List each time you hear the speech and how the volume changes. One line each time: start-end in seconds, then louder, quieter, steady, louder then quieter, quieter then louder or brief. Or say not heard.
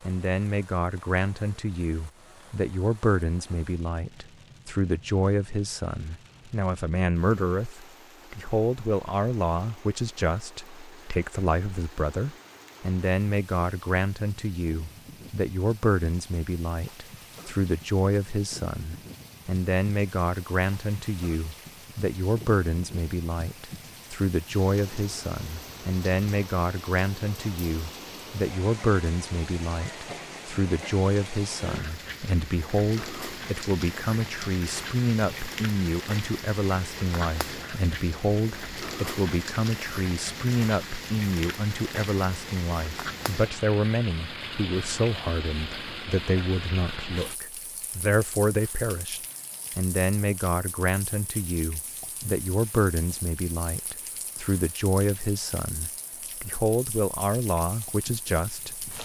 0.0-58.9 steady.